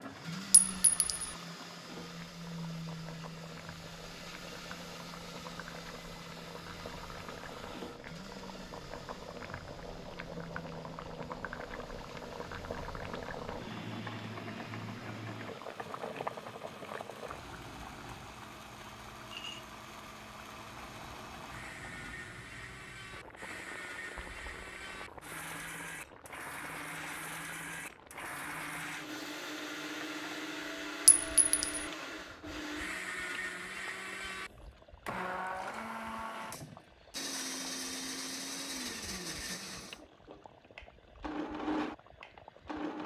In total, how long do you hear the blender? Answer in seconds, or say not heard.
43 s.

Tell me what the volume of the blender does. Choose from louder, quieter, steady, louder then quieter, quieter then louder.
quieter then louder.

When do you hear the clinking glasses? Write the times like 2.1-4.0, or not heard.
0.5-1.1, 31.1-31.9.